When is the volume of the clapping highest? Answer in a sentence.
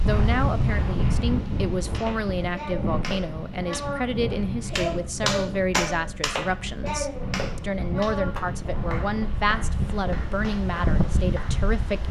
The volume of the clapping peaks at 5 seconds.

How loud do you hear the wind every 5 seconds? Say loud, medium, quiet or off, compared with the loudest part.
loud, medium, loud.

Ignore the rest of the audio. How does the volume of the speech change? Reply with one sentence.
The loudness of the speech stays about the same.